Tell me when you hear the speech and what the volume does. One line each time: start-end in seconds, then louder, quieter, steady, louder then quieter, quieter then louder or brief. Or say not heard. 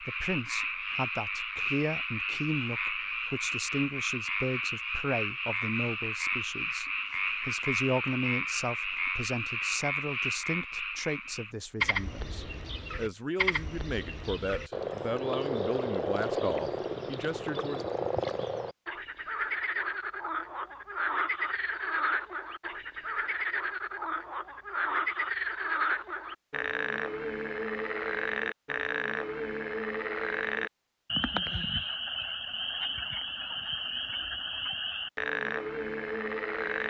0.0-17.9 steady.